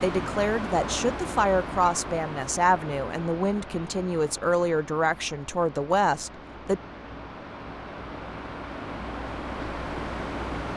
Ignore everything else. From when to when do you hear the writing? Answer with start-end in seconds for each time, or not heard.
not heard.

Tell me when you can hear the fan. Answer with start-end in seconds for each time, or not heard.
0.0-10.7.